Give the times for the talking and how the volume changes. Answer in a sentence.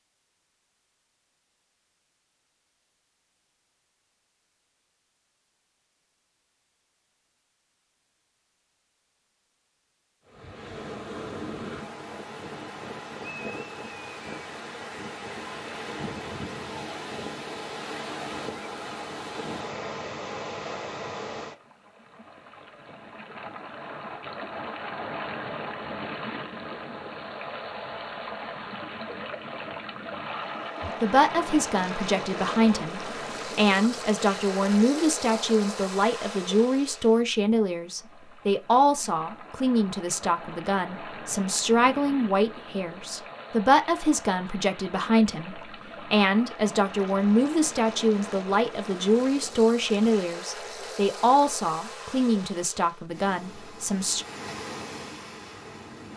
The talking can be heard from 30.8 to 54.2 s, at a steady volume.